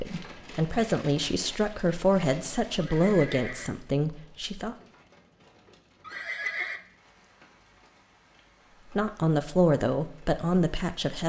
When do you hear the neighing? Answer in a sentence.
The neighing can be heard from 2.8 to 3.7 s and from 6.0 to 6.8 s.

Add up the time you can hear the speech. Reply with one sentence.
The speech can be heard for 7 seconds in total.